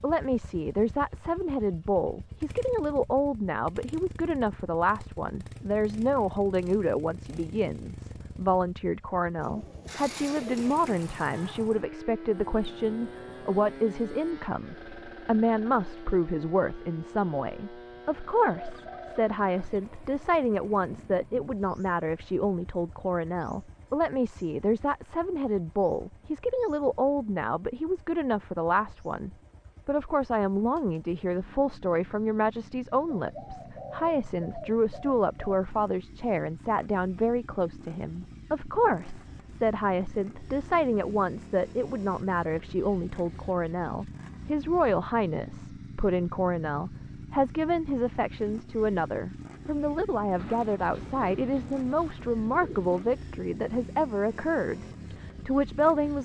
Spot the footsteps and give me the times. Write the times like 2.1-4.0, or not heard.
not heard.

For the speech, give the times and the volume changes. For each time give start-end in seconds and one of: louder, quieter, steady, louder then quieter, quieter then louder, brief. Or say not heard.
0.0-56.2 steady.